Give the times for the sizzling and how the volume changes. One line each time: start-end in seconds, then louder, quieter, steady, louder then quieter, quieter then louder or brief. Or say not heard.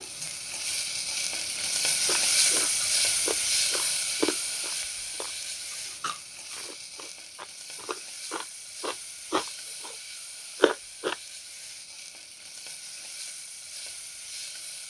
0.0-14.8 quieter.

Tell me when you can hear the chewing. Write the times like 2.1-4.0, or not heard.
2.0-9.9, 10.6-11.2.